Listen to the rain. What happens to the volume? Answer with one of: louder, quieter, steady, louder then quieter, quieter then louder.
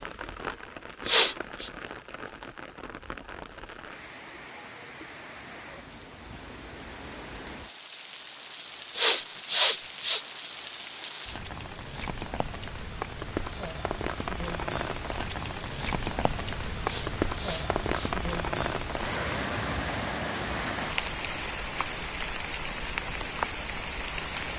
louder.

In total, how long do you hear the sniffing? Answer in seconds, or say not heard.
3 s.